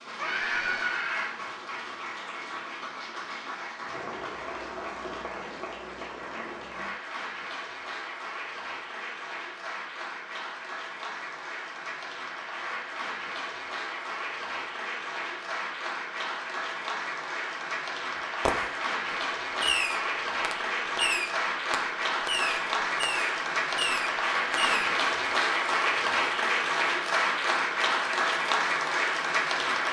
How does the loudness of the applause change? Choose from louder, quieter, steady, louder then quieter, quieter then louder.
louder.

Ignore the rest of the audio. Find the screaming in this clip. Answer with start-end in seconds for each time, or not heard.
0.1-1.4.